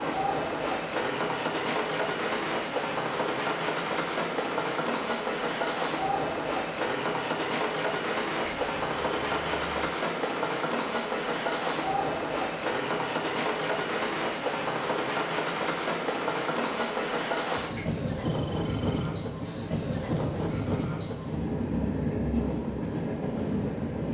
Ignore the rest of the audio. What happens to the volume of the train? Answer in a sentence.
The volume of the train stays about the same.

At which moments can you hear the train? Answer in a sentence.
The train can be heard from 0.0 to 24.0 s.